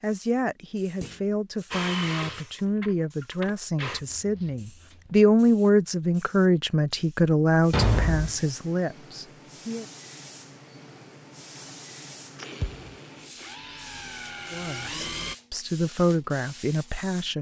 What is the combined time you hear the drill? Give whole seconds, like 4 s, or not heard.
6 s.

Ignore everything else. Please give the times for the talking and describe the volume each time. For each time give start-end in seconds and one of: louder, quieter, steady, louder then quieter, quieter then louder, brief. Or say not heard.
0.0-9.8 louder then quieter
14.5-17.3 brief.